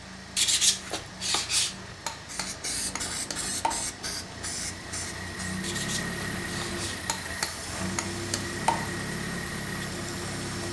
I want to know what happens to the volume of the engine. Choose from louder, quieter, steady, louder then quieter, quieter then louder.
louder.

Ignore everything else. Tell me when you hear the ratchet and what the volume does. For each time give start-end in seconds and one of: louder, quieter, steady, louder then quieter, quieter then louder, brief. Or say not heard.
not heard.